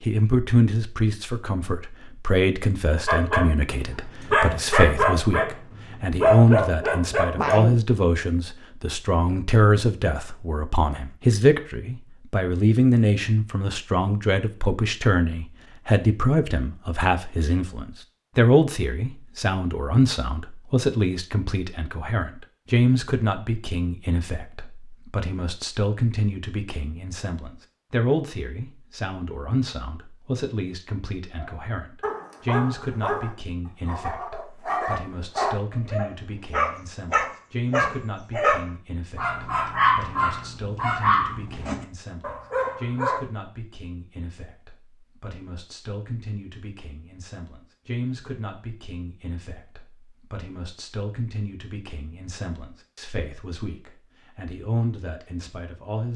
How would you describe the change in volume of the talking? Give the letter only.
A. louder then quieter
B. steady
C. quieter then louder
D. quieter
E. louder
D.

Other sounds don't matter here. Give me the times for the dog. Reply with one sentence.
You can hear the dog from 3.0 to 7.8 s and from 31.4 to 43.2 s.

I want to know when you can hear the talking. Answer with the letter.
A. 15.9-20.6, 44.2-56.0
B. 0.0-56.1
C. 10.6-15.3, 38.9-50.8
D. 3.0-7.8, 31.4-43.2
B.